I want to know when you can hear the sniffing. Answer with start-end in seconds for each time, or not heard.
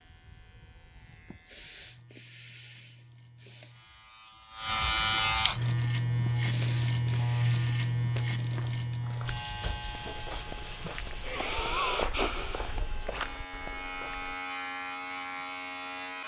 1.2-3.8, 6.2-7.9, 10.8-12.9.